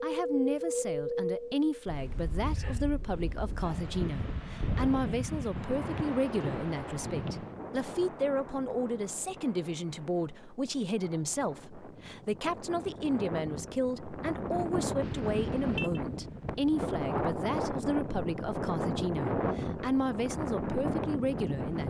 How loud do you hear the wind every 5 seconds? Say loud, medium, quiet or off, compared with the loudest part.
loud, medium, medium, loud, loud.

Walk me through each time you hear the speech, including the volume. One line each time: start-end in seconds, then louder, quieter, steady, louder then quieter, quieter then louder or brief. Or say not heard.
0.0-21.8 steady.